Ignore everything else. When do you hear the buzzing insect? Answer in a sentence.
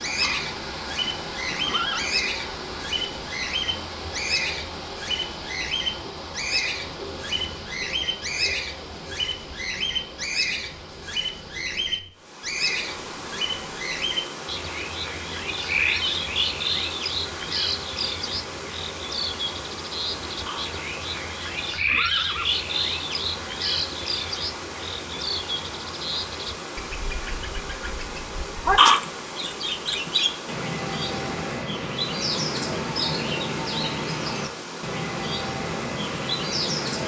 The buzzing insect can't be heard in this clip.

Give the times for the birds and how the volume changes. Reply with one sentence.
The birds can be heard from 0.0 to 37.0 s, at a steady volume.